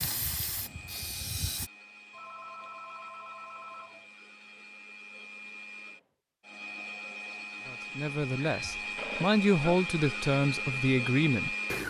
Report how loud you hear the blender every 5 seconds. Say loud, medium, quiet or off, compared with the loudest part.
quiet, medium, loud.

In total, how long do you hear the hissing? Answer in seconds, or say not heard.
2 s.